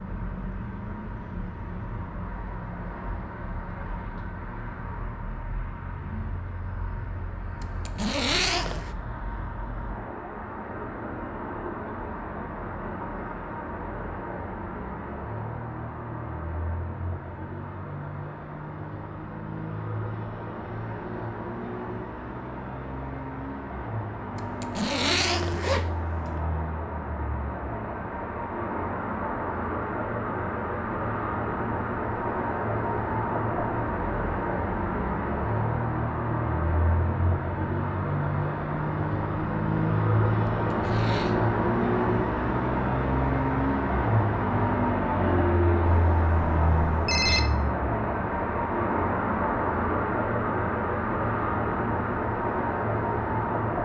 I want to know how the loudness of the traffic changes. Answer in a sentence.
The loudness of the traffic goes up.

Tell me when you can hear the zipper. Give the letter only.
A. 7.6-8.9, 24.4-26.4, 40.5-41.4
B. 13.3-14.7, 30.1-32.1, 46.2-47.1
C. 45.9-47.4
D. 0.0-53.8
A.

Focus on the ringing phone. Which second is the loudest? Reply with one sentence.
The volume of the ringing phone peaks at 47 seconds.